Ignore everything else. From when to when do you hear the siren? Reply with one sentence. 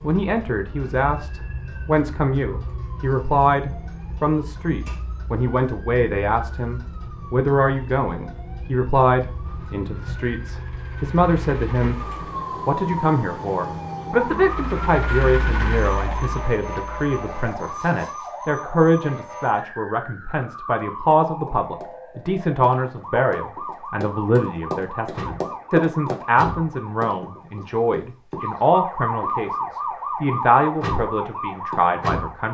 The siren can be heard from 0.0 to 32.4 s.